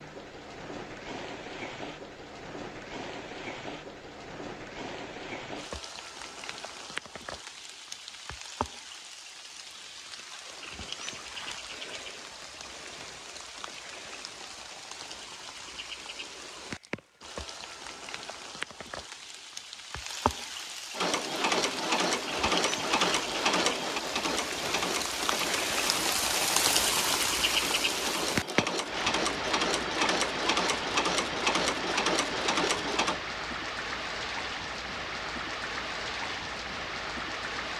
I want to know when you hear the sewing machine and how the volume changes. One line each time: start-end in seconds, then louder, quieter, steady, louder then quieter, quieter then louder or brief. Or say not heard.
20.9-33.2 quieter then louder.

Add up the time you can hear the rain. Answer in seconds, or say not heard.
38 s.